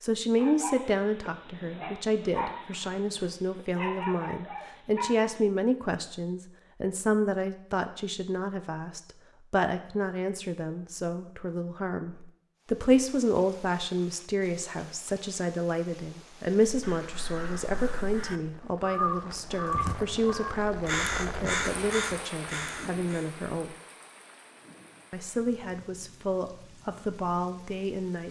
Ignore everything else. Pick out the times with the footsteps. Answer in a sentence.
You can't hear the footsteps here.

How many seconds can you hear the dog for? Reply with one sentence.
The dog can be heard for 5 seconds in total.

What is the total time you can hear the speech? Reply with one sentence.
The speech can be heard for 27 seconds in total.